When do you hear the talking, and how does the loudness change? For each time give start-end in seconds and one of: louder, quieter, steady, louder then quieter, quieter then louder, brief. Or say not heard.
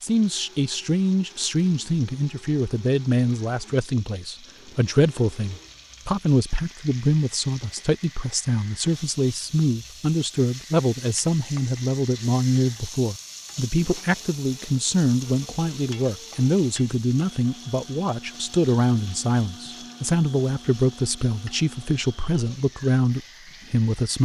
0.0-24.1 steady.